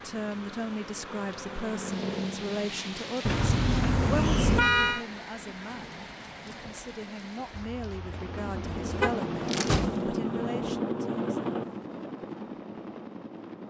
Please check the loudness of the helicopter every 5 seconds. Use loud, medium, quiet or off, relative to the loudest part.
medium, loud, loud.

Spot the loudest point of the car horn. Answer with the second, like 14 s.
5 s.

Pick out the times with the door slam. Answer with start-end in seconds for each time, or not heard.
9.4-10.5.